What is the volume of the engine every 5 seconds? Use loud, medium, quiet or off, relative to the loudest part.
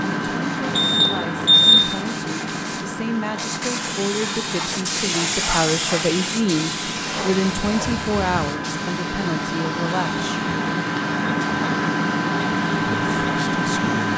medium, medium, loud.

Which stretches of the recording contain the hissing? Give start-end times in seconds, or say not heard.
0.0-14.1.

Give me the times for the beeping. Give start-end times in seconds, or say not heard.
0.8-1.9.